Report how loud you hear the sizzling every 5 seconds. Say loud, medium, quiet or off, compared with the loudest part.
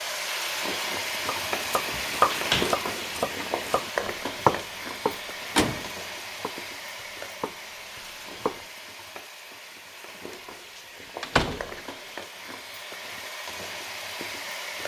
loud, medium, medium.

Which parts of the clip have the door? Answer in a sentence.
You can hear the door from 1.9 to 2.8 s, from 5.0 to 5.9 s and from 11.2 to 11.8 s.